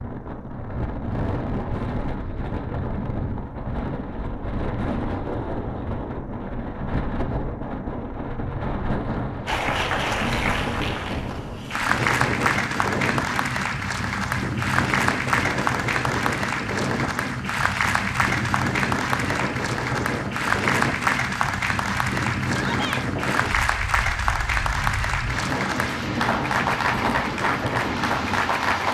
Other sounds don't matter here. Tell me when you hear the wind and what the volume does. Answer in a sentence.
You can hear the wind from 0.0 to 28.8 s, at a steady volume.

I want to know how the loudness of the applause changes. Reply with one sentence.
The volume of the applause stays about the same.